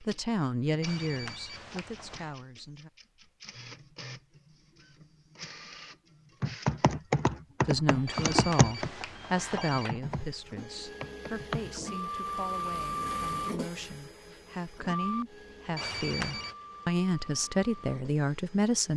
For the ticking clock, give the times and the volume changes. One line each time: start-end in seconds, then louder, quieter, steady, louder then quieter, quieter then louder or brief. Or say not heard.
not heard.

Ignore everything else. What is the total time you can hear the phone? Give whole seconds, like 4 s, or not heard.
4 s.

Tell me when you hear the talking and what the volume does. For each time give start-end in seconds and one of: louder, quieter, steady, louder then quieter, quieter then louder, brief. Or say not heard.
0.0-2.9 brief
7.7-18.9 quieter then louder.